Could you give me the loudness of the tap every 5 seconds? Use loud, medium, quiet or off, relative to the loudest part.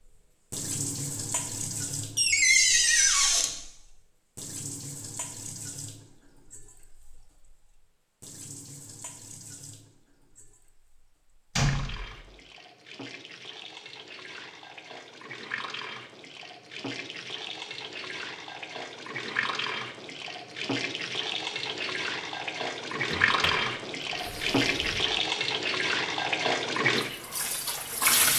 medium, quiet, quiet, medium, loud, loud.